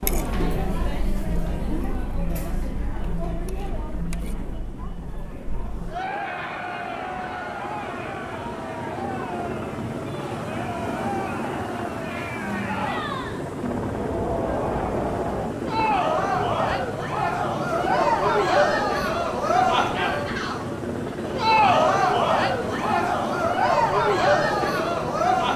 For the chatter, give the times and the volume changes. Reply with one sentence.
You can hear the chatter from 0.0 to 25.5 s, getting louder.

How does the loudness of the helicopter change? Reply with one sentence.
The loudness of the helicopter goes up.